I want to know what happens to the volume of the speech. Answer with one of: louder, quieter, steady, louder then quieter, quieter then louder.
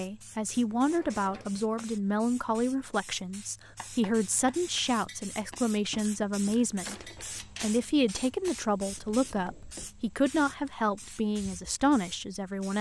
steady.